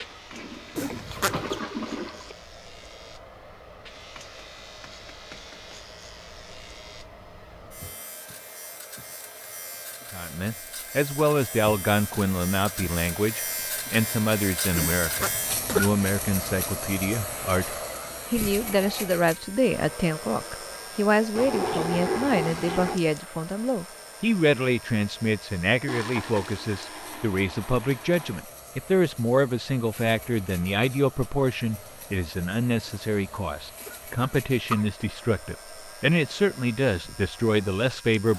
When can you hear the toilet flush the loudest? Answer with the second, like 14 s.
22 s.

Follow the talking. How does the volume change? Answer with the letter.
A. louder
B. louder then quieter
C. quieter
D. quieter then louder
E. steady
E.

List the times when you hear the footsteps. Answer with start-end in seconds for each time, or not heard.
not heard.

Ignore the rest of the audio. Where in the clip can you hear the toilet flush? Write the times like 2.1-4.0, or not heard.
0.3-2.4, 21.4-23.0, 25.9-28.4.